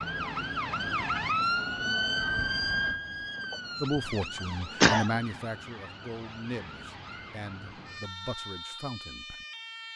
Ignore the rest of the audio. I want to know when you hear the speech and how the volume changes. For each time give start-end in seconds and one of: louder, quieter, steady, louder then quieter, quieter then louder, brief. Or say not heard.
3.8-9.4 quieter.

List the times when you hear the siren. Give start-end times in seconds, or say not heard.
0.0-9.9.